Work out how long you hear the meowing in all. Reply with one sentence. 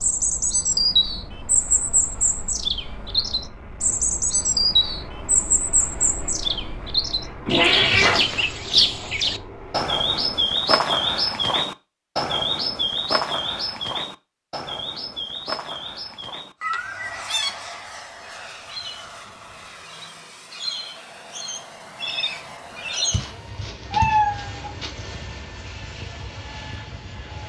The meowing can be heard for 3 seconds in total.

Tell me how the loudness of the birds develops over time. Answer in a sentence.
The volume of the birds goes down.